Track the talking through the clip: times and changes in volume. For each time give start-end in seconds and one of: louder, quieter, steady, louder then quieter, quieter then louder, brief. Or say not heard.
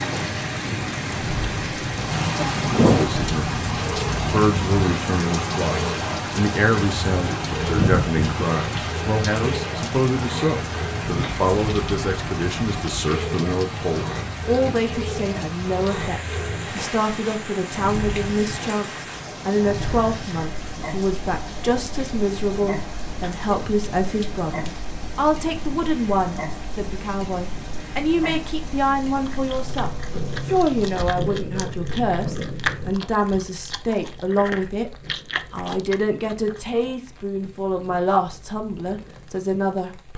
2.8-40.1 steady.